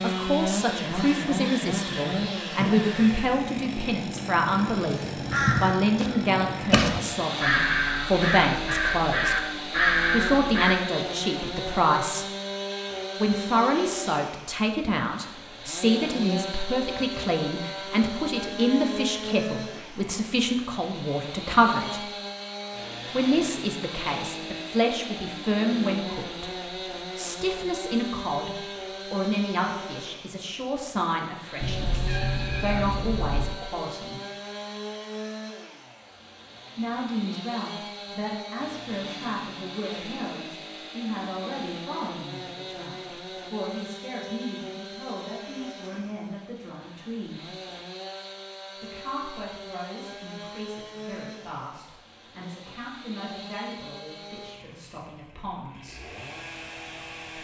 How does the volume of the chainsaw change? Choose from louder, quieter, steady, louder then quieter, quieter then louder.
quieter.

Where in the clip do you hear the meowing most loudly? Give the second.
32 s.